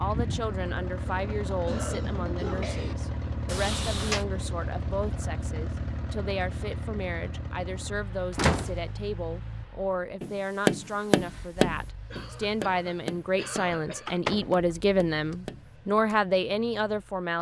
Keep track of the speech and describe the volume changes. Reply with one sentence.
The volume of the speech goes up.